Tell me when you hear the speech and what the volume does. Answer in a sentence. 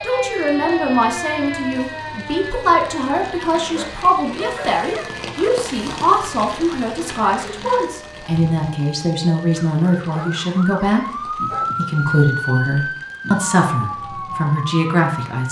You can hear the speech from 0.0 to 15.4 s, at a steady volume.